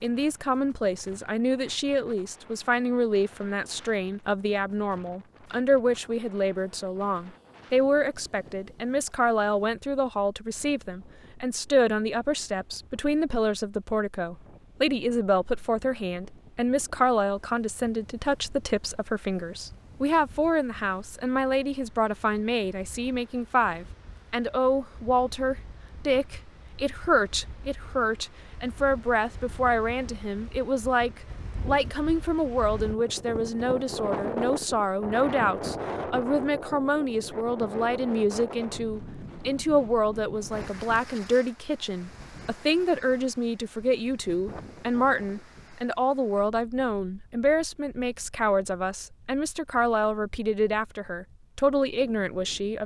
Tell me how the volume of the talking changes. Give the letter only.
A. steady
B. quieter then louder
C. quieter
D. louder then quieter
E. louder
A.